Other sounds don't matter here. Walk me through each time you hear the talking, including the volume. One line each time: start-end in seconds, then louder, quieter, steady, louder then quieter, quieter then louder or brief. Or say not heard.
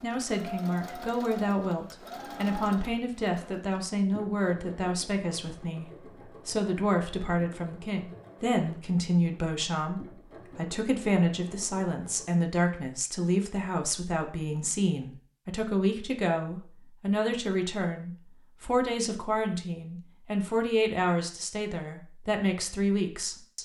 0.0-23.6 steady.